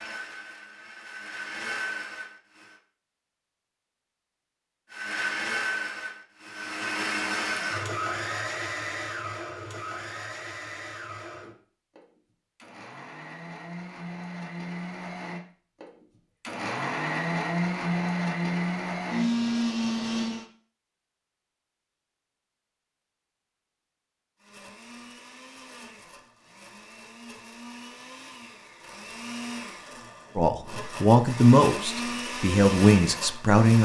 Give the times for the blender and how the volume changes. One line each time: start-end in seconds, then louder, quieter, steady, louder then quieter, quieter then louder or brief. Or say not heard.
0.0-2.8 brief
4.9-20.4 quieter then louder
24.4-33.7 louder.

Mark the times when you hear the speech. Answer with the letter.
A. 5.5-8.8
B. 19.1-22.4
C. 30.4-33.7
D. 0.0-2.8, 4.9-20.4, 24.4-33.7
C.